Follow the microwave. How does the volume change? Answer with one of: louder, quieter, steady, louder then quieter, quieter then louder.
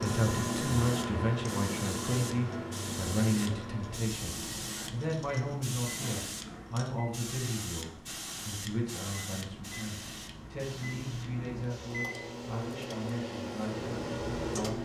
quieter then louder.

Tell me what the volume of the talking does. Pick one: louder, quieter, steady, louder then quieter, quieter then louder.
quieter.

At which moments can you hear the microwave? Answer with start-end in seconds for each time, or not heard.
0.0-14.7.